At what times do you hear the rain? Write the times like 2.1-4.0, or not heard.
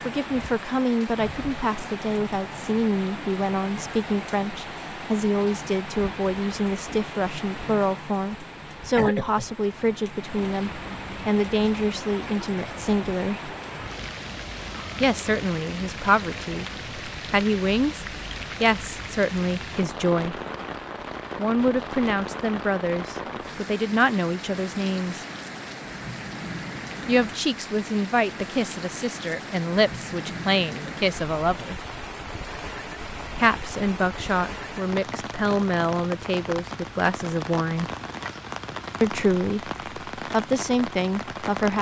0.0-41.7.